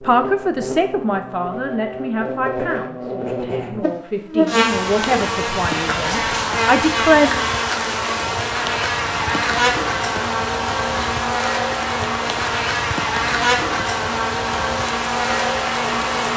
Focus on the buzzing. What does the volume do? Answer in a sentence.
The volume of the buzzing goes up.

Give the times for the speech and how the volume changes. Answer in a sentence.
You can hear the speech from 0.0 to 7.3 s, getting quieter then louder.